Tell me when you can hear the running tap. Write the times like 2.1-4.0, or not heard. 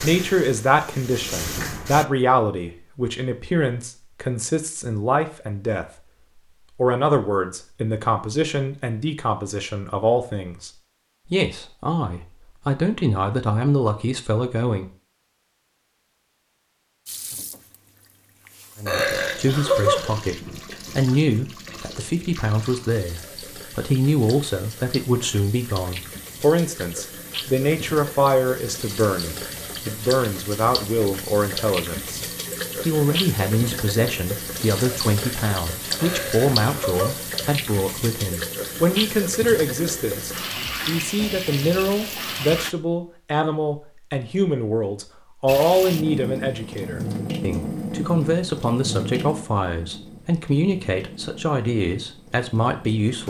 0.0-2.0, 17.1-42.8, 45.5-53.2.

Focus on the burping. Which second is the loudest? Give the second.
20 s.